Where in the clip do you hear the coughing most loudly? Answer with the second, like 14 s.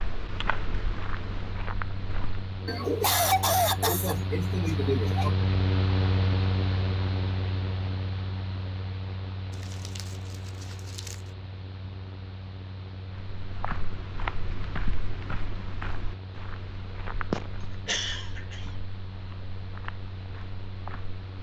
3 s.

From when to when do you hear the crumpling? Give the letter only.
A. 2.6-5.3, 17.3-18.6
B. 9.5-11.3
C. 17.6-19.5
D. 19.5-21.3
B.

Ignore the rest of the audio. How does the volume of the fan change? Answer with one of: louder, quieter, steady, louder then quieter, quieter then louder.
louder then quieter.